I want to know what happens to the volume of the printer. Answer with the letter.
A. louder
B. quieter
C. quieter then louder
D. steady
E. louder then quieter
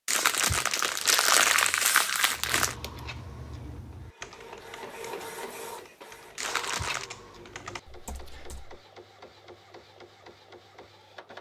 E.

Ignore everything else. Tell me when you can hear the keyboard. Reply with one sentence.
You can hear the keyboard from 2.3 to 8.8 s.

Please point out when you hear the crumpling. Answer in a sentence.
You can hear the crumpling from 0.1 to 2.8 s and from 6.3 to 7.1 s.